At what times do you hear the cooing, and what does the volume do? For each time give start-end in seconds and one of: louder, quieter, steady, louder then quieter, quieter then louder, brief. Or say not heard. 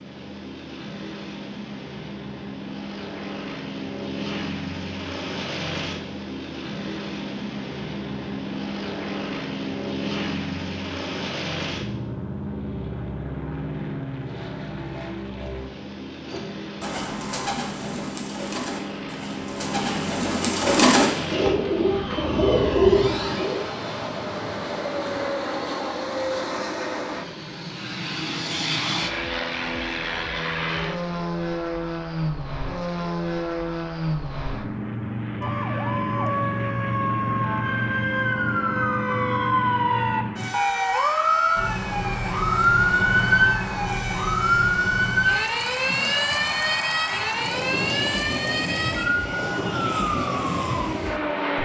16.3-23.6 louder.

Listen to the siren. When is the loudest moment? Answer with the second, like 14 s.
43 s.